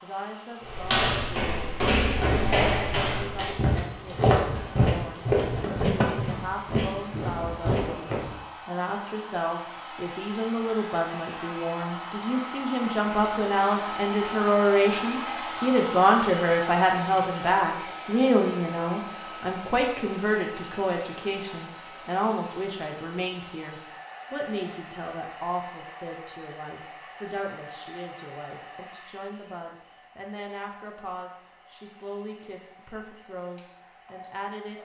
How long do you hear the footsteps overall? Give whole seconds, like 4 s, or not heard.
8 s.